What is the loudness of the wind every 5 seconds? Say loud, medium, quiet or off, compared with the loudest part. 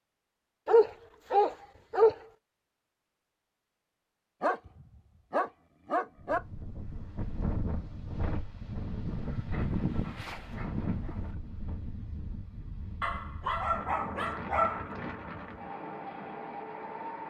off, loud, loud, loud.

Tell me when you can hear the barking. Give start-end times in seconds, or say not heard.
0.7-2.1, 4.4-6.4, 9.1-11.2, 13.0-14.9.